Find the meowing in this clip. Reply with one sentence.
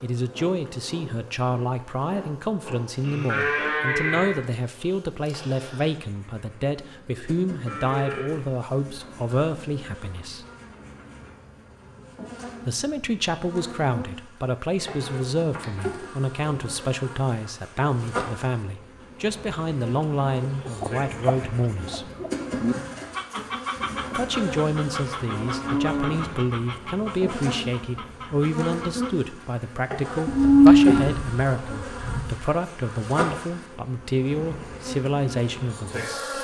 The meowing can't be heard in this clip.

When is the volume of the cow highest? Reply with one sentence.
The loudest moment of the cow is at 31 seconds.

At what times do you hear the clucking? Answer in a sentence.
The clucking can be heard from 20.6 to 29.4 s.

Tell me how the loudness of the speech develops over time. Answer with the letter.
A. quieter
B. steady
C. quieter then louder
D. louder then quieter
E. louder
B.